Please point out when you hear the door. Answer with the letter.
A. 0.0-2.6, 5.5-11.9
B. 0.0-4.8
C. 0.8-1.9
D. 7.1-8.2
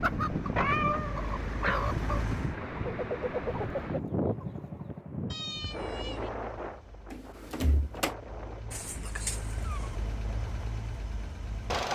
D.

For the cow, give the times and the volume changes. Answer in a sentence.
The cow can't be heard in this clip.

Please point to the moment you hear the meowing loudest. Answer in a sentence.
The loudest moment of the meowing is at 1 second.